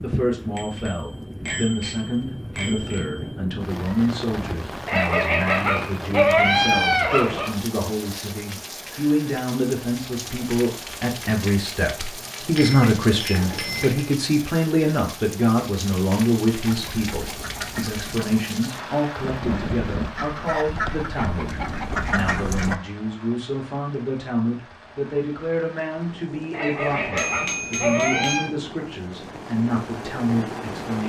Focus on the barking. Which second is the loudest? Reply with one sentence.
The volume of the barking peaks at 6 seconds.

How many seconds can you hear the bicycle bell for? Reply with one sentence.
You can hear the bicycle bell for 6 seconds altogether.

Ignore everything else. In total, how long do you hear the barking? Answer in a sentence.
You can hear the barking for 5 seconds altogether.